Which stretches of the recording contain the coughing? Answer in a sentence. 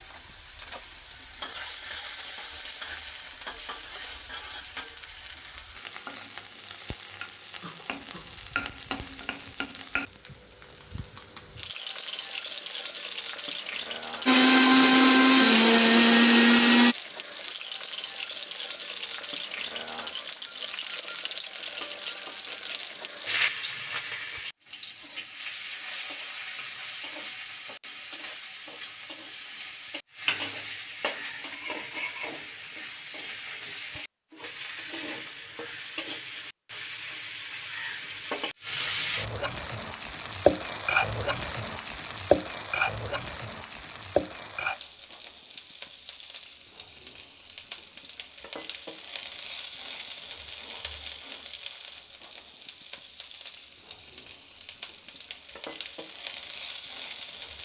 The coughing can't be heard in this clip.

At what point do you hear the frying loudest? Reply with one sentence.
The loudest moment of the frying is at 41 seconds.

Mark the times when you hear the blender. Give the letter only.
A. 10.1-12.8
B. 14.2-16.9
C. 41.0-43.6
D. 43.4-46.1
B.